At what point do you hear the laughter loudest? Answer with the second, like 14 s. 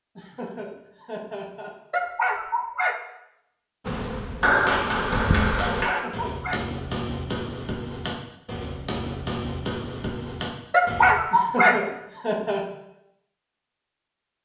12 s.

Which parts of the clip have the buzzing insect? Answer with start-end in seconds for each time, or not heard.
3.9-5.9.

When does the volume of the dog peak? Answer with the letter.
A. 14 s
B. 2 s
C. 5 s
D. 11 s
D.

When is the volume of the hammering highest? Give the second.
5 s.